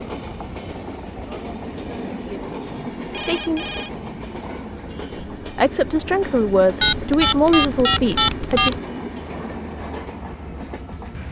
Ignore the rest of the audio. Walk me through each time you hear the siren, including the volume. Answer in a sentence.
You can't hear the siren here.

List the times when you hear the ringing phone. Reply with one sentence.
The ringing phone can be heard from 3.0 to 3.9 s and from 6.8 to 8.8 s.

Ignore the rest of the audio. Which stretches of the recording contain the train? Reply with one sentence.
The train can be heard from 0.0 to 11.2 s.